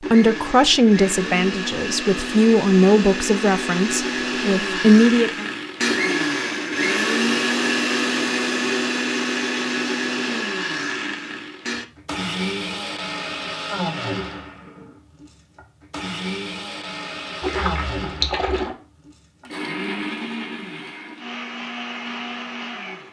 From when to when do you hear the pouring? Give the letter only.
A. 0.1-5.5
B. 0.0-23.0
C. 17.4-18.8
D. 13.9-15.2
C.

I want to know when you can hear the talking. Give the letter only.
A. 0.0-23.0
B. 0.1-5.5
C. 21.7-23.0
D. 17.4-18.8
B.